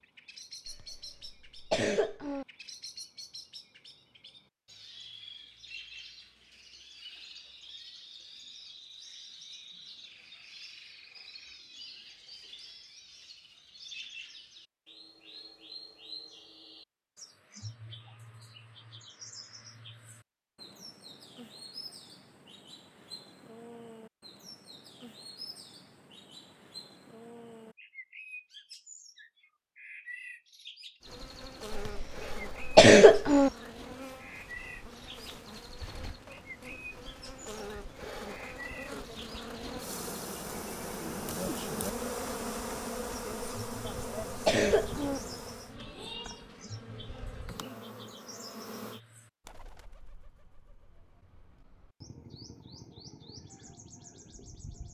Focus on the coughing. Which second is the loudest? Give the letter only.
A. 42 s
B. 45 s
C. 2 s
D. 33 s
D.